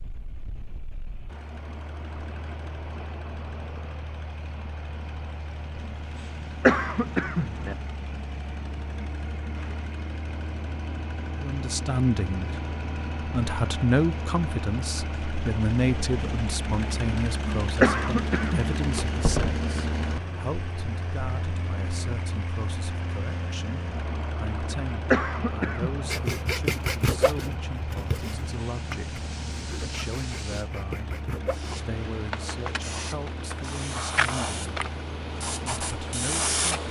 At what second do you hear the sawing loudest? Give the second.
27 s.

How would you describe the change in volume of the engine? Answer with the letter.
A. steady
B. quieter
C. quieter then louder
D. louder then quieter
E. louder
D.